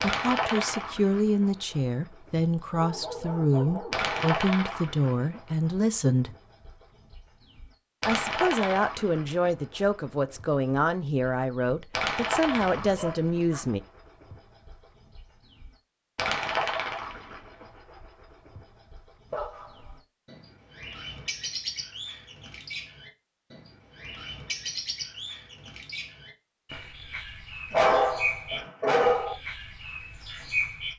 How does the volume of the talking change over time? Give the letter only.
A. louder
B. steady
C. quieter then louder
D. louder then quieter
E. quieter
B.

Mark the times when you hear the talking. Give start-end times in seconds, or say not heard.
0.0-6.3, 8.1-13.8.